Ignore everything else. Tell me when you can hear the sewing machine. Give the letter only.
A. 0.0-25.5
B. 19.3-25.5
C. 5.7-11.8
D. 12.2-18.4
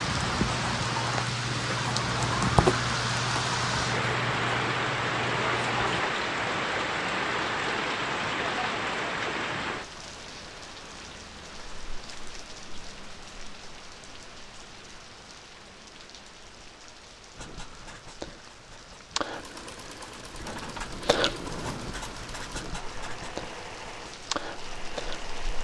B.